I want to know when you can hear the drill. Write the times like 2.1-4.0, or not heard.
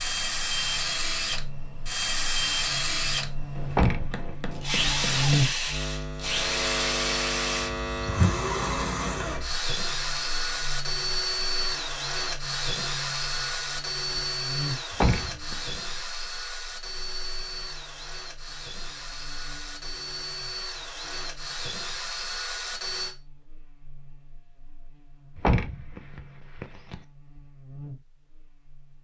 0.0-23.1.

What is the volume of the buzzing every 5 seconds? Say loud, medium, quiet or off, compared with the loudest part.
medium, loud, medium, quiet, quiet, quiet.